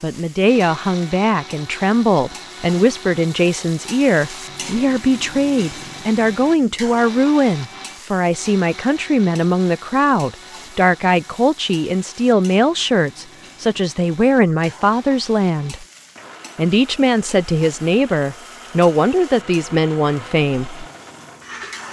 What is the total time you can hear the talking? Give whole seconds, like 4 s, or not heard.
20 s.